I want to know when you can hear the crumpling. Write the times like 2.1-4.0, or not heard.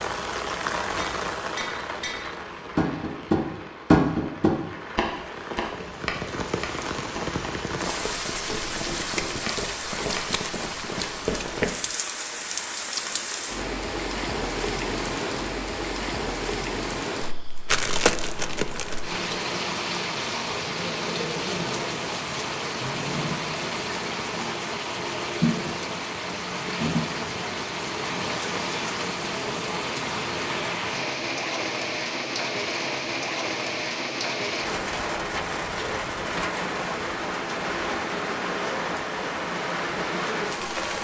17.6-19.0.